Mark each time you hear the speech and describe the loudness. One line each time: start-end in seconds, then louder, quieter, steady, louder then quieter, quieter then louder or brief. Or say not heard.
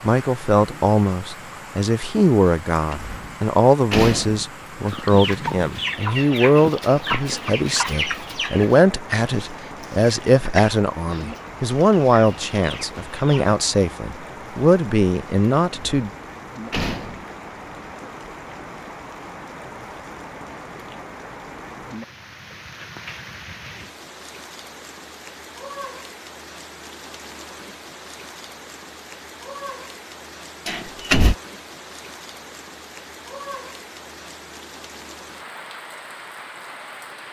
0.0-16.1 steady.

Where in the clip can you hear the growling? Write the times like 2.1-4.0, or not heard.
not heard.